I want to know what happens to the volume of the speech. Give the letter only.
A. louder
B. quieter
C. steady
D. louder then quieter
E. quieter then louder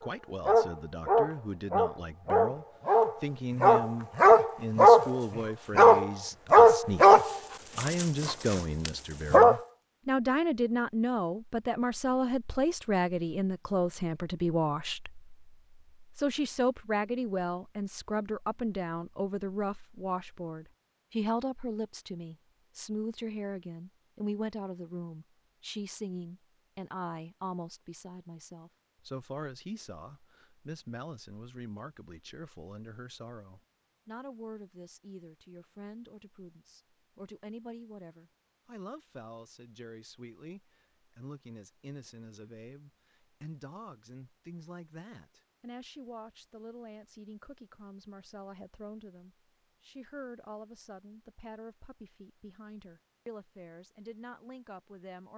B.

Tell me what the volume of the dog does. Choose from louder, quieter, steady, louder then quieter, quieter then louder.
louder then quieter.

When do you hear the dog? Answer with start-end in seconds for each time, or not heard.
0.5-9.6.